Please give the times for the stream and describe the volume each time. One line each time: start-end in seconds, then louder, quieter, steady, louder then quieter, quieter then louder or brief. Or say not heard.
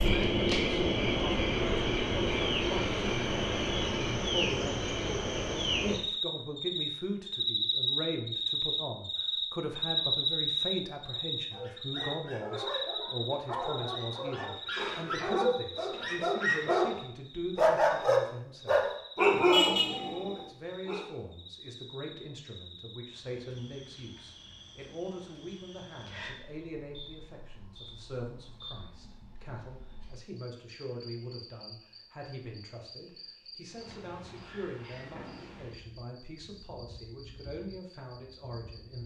not heard.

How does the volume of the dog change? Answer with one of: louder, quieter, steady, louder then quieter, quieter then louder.
louder.